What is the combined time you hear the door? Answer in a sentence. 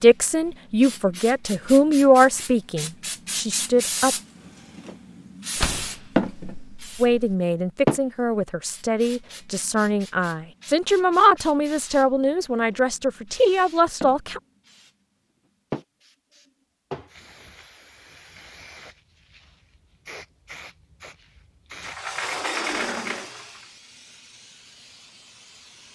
The door can be heard for 4 seconds in total.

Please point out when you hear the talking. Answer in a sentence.
The talking can be heard from 0.0 to 4.2 s and from 7.0 to 14.4 s.